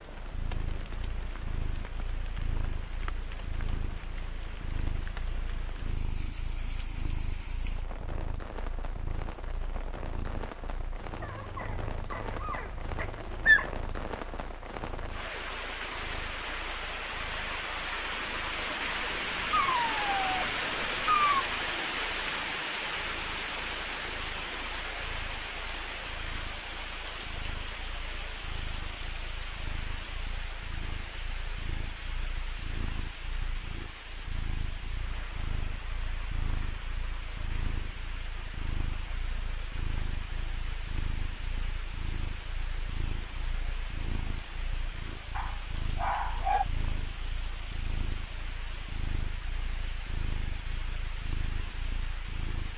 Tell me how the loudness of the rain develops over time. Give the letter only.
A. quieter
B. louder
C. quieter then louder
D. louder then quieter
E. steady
D.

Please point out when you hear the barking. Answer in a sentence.
The barking can be heard from 11.2 to 13.7 s, from 19.0 to 21.4 s and from 45.4 to 46.6 s.